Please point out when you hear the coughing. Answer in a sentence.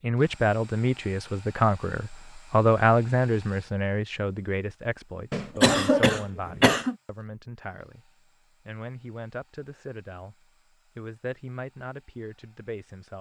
You can hear the coughing from 5.3 to 7.0 s.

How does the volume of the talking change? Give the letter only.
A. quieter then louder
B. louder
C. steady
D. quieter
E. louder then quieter
D.